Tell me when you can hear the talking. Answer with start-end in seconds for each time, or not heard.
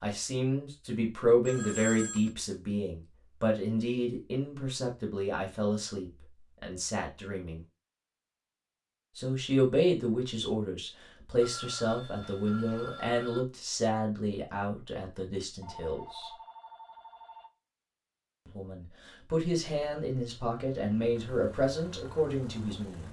0.0-7.6, 9.2-16.3, 18.4-23.0.